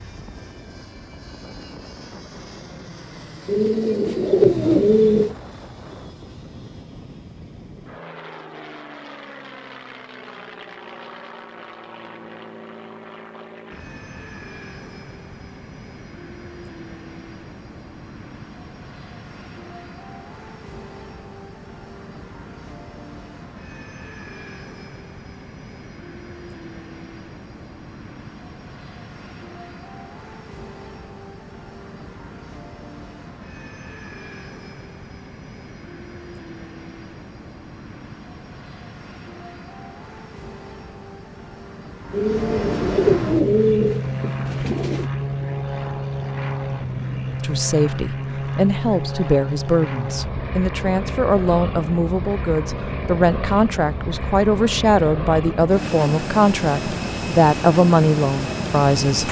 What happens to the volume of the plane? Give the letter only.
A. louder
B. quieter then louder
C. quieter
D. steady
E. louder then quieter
A.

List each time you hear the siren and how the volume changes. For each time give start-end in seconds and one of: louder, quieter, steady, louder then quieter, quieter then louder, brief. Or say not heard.
not heard.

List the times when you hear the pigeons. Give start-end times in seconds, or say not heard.
3.5-5.3, 42.1-45.1.